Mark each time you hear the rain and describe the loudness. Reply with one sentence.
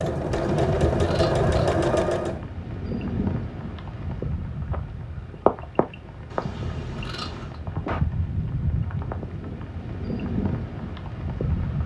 The rain can be heard from 0.0 to 11.8 s, at a steady volume.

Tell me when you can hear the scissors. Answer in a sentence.
You can hear the scissors from 0.3 to 1.7 s and from 6.3 to 7.6 s.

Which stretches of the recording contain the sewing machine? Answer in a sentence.
You can hear the sewing machine from 0.0 to 2.5 s.